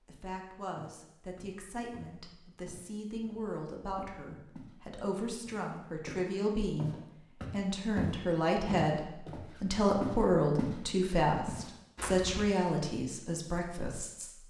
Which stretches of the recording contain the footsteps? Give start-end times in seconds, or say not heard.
0.8-4.8, 5.4-10.8, 11.4-12.4.